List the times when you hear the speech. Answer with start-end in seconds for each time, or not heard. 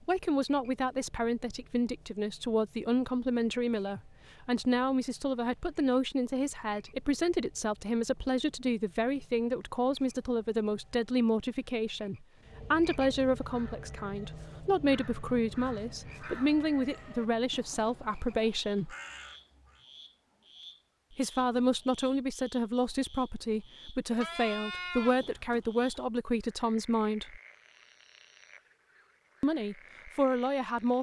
0.1-18.9, 21.1-27.4, 29.4-30.9.